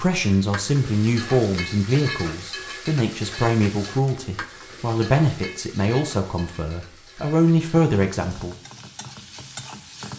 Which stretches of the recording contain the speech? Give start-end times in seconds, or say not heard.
0.0-8.6.